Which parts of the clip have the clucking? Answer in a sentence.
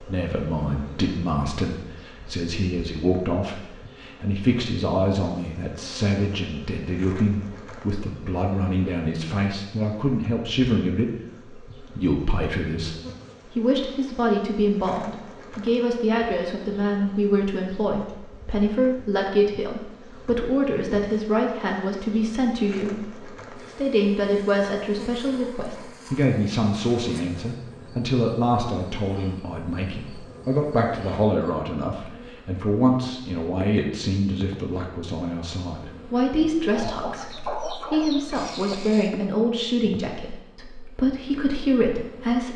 The clucking can be heard from 36.8 to 38.8 s.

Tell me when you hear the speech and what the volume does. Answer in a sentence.
The speech can be heard from 0.0 to 42.5 s, at a steady volume.